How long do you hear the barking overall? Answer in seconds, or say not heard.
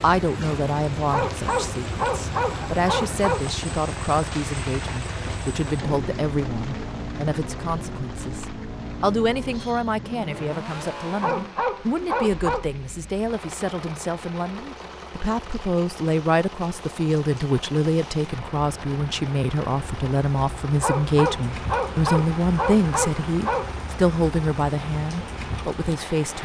7 s.